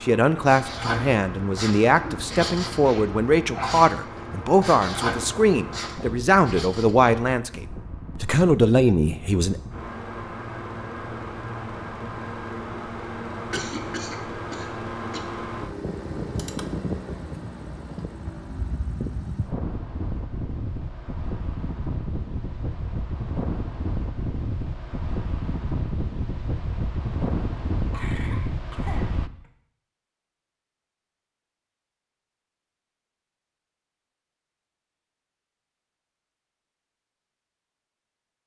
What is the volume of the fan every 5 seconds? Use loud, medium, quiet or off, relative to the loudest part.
medium, medium, loud, loud, loud, loud, off, off.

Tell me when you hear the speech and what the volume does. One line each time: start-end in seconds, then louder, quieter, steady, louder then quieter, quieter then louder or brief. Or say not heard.
0.0-9.6 steady.